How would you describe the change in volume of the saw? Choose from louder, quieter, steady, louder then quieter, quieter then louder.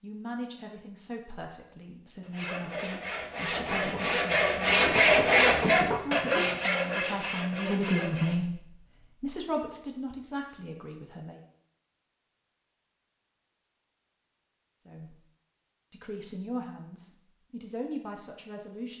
louder then quieter.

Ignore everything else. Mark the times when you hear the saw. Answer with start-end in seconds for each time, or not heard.
2.2-8.4.